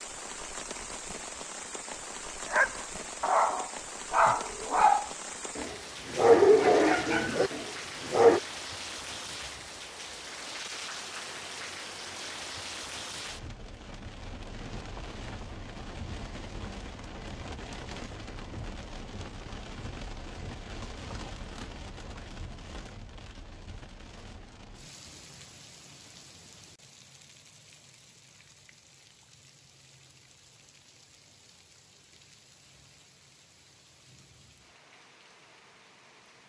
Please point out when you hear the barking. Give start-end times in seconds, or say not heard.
2.5-8.4.